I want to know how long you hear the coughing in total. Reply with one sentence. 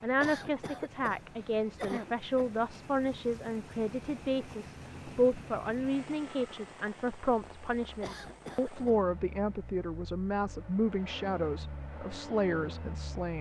You can hear the coughing for 3 seconds altogether.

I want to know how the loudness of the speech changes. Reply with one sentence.
The loudness of the speech stays about the same.